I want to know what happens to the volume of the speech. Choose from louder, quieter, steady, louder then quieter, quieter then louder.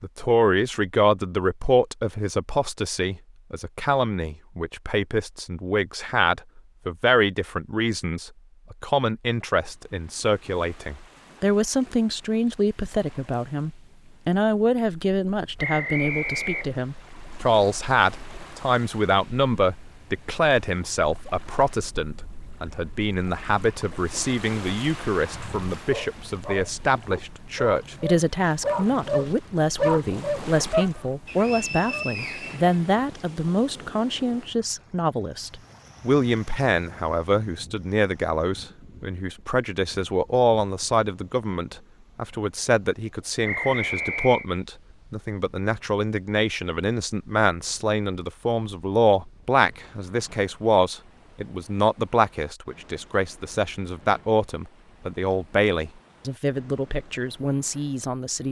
steady.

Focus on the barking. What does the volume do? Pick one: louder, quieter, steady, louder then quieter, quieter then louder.
louder.